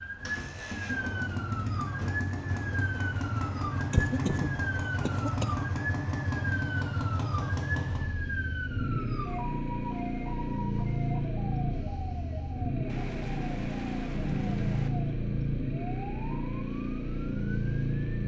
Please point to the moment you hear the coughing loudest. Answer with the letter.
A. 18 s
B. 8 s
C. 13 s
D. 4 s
D.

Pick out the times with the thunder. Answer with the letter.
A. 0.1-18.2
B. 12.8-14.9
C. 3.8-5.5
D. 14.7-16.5
B.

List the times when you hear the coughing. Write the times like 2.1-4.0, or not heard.
3.8-5.5.